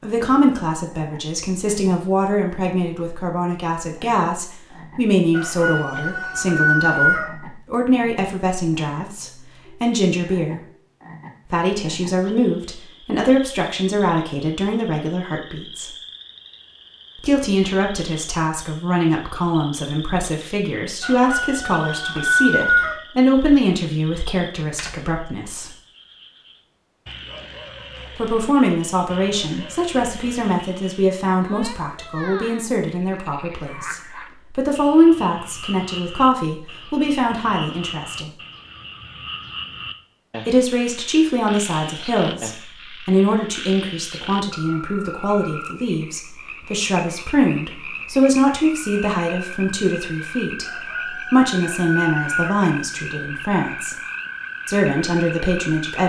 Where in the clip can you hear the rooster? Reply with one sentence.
You can hear the rooster from 5.3 to 7.2 s, from 21.0 to 22.9 s and from 50.6 to 52.5 s.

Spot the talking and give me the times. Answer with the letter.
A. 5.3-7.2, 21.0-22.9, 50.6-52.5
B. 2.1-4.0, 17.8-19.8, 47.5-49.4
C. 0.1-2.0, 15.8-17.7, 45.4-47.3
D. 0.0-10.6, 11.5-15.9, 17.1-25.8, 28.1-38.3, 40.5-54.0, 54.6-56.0
D.